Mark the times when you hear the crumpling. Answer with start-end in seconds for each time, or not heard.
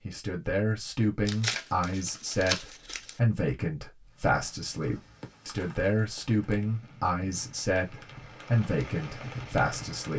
1.2-3.2, 5.4-6.7.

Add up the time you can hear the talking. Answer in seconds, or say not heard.
10 s.